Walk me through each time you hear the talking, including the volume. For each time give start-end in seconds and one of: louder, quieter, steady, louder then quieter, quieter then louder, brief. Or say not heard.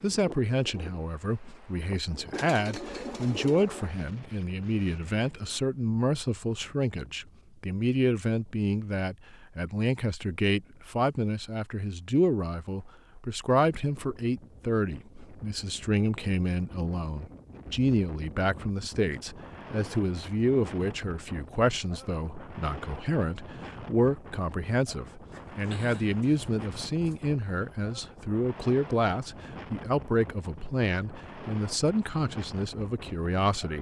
0.0-33.7 steady.